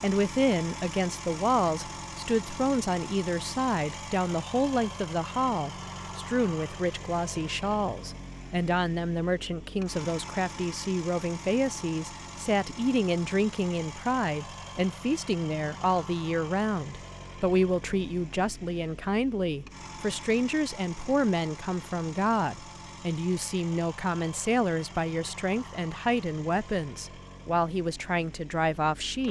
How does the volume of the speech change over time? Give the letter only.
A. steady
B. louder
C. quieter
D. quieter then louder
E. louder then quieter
A.